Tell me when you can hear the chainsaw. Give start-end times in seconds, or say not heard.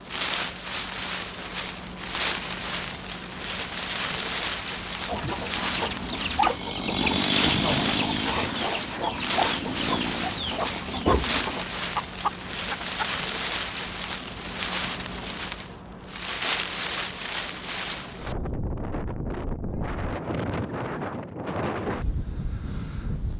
6.5-10.4.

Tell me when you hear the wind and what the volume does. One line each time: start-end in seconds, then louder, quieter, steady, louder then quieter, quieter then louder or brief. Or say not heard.
0.0-23.3 steady.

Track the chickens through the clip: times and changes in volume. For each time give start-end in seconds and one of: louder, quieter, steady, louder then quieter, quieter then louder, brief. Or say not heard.
5.0-13.1 steady.